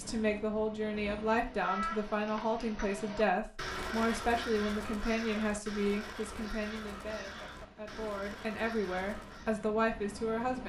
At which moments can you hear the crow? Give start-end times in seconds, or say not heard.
1.4-9.7.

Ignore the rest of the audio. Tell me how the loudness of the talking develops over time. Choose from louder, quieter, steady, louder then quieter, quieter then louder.
quieter then louder.